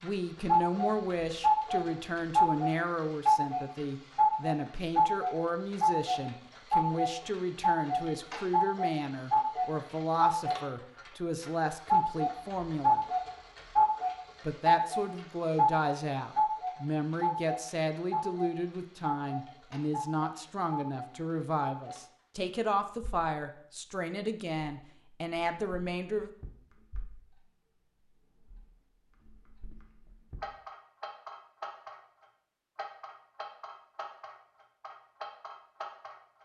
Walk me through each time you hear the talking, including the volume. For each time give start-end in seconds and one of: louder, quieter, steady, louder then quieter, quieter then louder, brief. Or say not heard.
0.0-13.0 steady
14.4-26.3 steady.